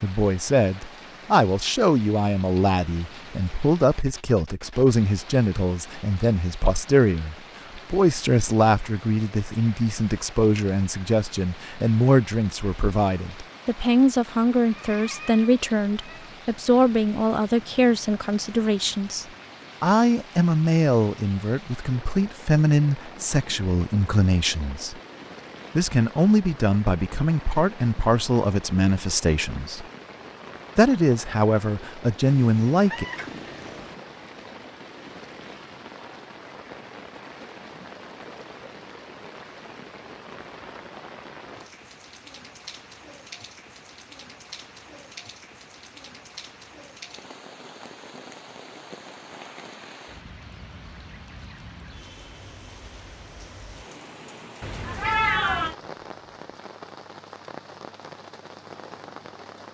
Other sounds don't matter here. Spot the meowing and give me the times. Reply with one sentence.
The meowing can be heard from 14.6 to 16.3 s, from 32.2 to 34.0 s and from 54.6 to 55.8 s.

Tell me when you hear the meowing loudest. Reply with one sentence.
The volume of the meowing peaks at 55 seconds.